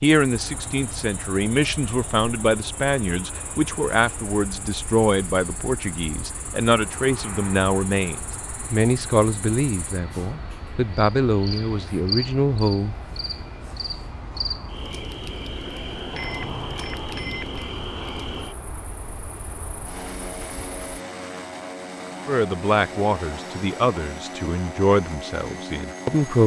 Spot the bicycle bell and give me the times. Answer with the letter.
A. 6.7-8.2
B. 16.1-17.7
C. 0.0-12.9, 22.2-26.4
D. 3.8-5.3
B.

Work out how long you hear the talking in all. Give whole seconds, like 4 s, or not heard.
17 s.